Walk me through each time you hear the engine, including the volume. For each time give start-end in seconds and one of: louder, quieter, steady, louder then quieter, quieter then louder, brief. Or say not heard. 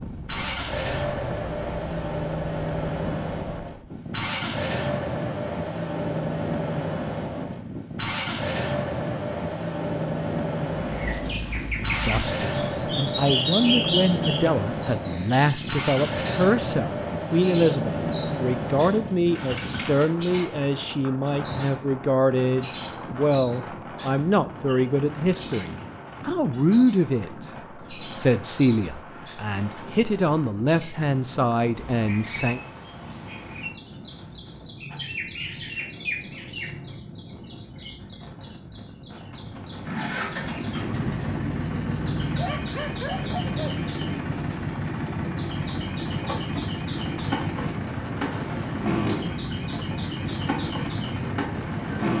0.2-20.1 steady
39.8-52.1 steady.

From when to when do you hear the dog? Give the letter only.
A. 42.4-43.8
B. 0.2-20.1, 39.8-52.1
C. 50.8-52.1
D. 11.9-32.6
A.